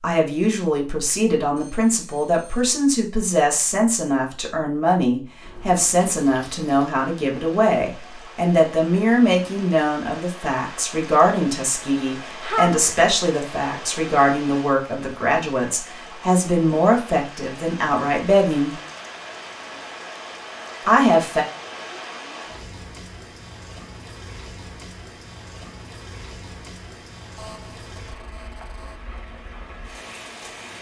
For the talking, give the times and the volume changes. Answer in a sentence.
The talking can be heard from 0.0 to 18.8 s, at a steady volume; and briefly from 20.9 to 21.4 s.